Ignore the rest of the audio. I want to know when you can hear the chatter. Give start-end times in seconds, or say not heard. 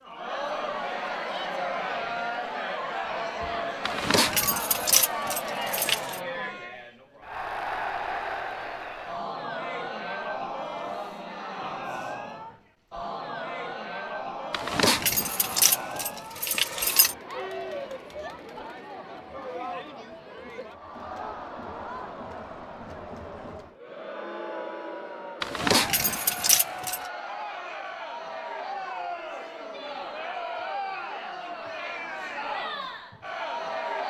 0.0-34.0.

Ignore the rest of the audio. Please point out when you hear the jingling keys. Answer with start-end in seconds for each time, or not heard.
3.9-6.2, 14.5-17.1, 25.4-27.0.